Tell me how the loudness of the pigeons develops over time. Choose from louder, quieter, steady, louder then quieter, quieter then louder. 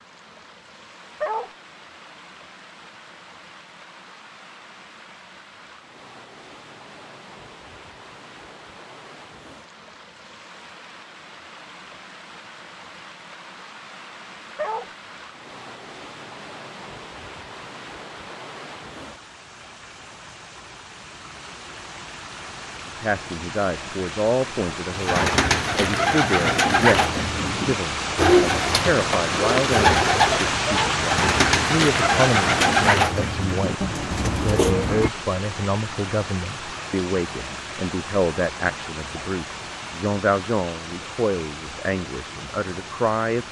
steady.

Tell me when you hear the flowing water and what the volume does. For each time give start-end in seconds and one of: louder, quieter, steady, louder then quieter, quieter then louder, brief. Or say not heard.
0.0-43.4 louder then quieter.